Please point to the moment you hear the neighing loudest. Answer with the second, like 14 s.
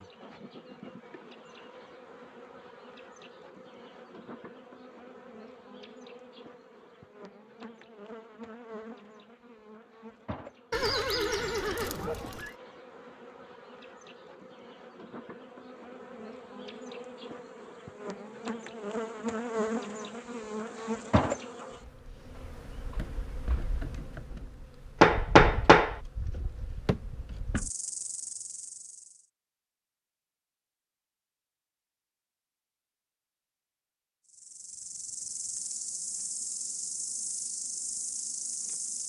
11 s.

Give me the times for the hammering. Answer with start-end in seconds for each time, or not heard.
25.0-25.9.